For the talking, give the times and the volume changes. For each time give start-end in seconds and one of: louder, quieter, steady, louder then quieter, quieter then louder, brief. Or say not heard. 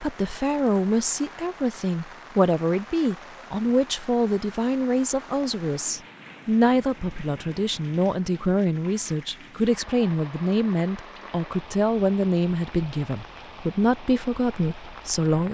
0.0-15.4 steady.